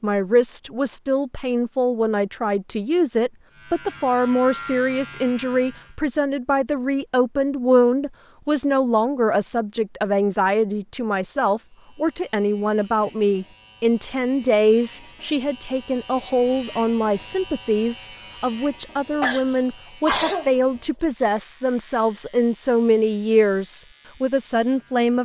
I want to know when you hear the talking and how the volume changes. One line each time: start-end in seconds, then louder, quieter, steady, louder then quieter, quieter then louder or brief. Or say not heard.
0.0-25.2 steady.